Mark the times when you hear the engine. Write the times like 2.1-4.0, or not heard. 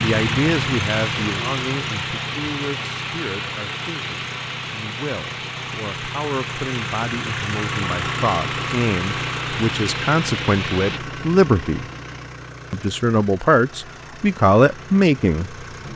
0.0-15.9.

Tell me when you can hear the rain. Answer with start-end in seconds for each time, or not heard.
0.0-11.0.